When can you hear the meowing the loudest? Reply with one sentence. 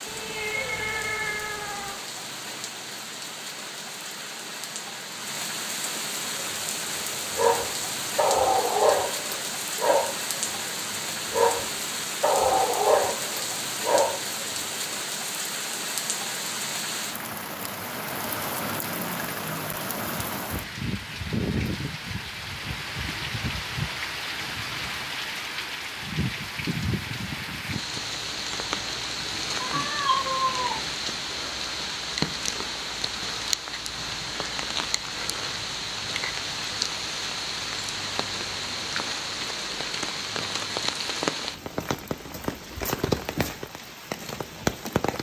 The volume of the meowing peaks at 30 seconds.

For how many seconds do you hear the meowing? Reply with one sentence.
You can hear the meowing for 3 seconds altogether.